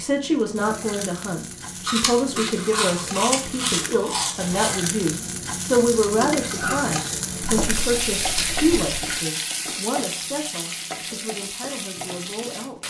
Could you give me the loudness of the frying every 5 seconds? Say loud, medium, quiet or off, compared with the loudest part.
medium, loud, medium.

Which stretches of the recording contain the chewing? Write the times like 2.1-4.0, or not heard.
1.9-4.8, 7.4-9.2.